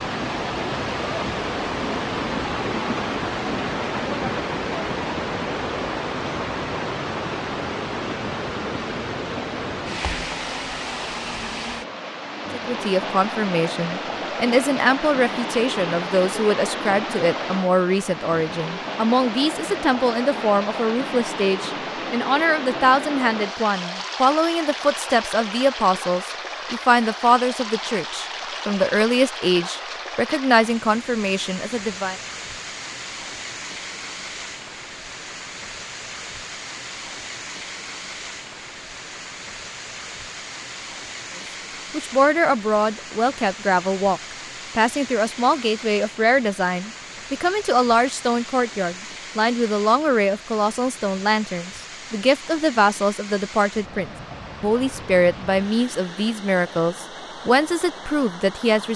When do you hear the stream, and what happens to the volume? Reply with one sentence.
You can hear the stream from 0.0 to 58.9 s, getting quieter.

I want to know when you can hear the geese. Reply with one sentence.
The geese can't be heard in this clip.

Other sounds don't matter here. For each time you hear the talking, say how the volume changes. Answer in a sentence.
The talking can be heard from 12.5 to 32.1 s, at a steady volume; and from 41.9 to 58.9 s, at a steady volume.